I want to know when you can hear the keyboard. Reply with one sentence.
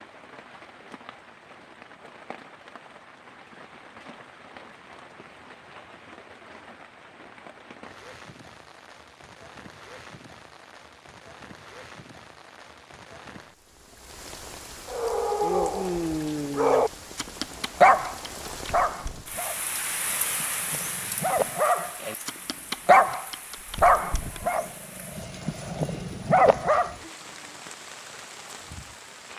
The keyboard can't be heard in this clip.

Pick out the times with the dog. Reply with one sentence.
You can hear the dog from 14.9 to 26.9 s.